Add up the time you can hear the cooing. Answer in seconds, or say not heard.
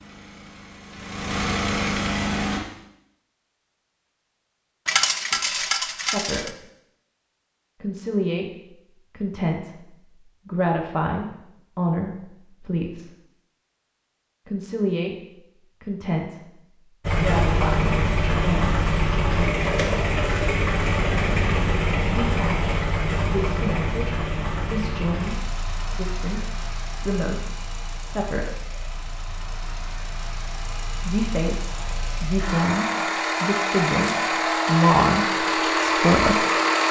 not heard.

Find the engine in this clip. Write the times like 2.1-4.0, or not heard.
0.0-2.6, 17.0-36.8.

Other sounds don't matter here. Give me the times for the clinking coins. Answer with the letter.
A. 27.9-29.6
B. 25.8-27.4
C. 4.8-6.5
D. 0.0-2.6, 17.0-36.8
C.